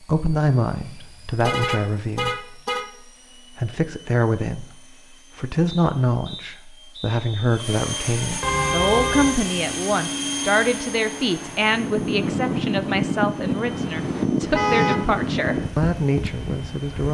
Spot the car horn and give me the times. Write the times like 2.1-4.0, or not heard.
0.9-2.9, 8.4-9.4, 14.5-15.0.